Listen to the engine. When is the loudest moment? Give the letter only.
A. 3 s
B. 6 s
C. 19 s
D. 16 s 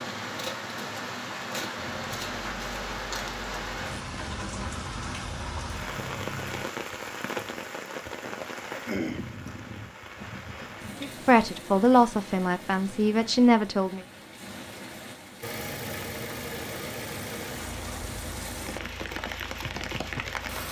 D.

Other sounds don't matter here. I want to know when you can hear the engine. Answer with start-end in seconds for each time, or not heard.
1.8-6.7, 15.4-20.6.